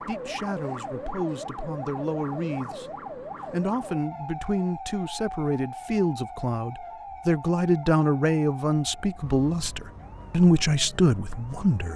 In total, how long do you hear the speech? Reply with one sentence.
You can hear the speech for 11 seconds altogether.